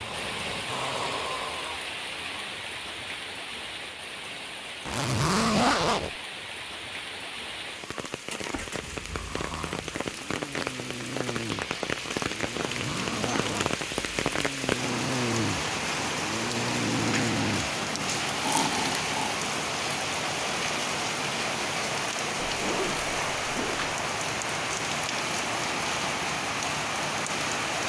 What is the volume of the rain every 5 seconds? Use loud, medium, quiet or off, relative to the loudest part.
medium, medium, loud, loud, loud, loud.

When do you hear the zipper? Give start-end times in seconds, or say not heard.
4.8-6.1, 12.5-13.8, 22.4-23.9.